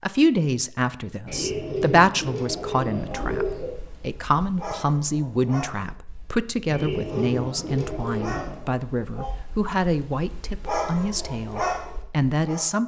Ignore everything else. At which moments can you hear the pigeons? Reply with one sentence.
The pigeons can be heard from 1.2 to 3.8 s and from 6.7 to 8.7 s.